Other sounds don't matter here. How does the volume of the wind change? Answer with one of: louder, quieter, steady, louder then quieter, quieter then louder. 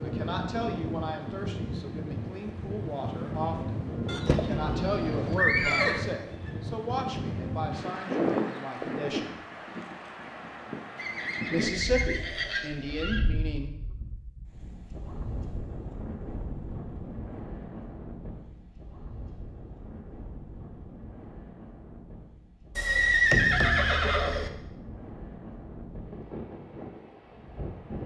quieter.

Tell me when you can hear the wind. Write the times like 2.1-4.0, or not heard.
0.0-28.0.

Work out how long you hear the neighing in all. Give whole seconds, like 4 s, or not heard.
6 s.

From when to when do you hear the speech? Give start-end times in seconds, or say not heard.
0.0-9.4, 11.5-13.8.